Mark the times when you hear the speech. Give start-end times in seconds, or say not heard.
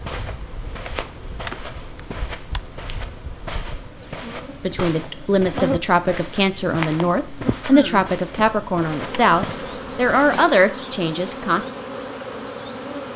4.6-11.7.